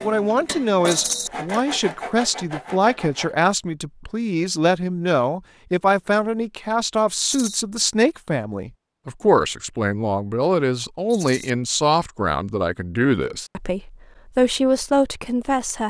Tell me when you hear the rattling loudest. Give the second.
1 s.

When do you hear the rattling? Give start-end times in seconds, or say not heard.
0.8-1.3, 7.2-7.7, 11.1-11.5.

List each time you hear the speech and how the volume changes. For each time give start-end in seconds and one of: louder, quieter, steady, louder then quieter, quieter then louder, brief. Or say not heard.
0.0-15.8 steady.